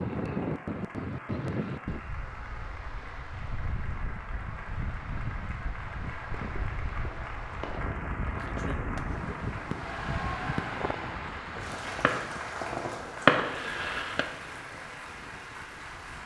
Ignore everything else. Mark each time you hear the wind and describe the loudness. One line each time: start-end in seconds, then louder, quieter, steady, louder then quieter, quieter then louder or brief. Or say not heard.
0.0-16.2 quieter.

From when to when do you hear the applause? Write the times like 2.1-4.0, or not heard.
0.0-16.2.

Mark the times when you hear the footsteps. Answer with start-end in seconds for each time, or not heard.
not heard.